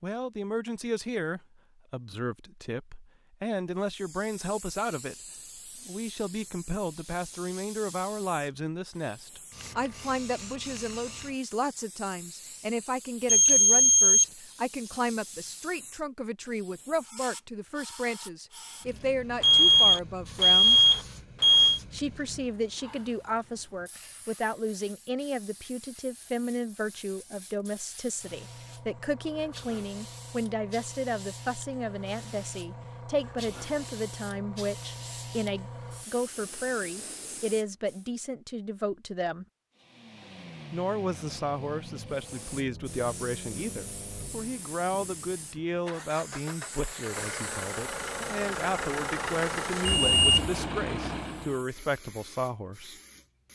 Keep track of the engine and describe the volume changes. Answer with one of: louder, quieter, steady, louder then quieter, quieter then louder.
louder.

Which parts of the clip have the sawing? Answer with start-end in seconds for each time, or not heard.
not heard.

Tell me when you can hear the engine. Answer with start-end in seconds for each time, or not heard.
39.8-51.6.